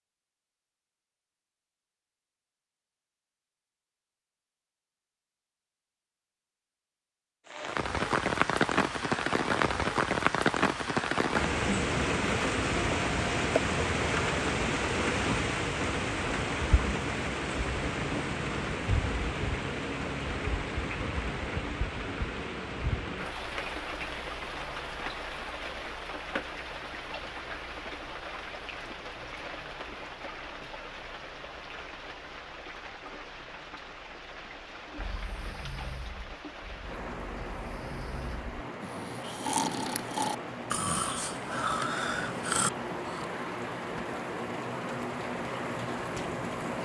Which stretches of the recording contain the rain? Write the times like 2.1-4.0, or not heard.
7.5-46.7.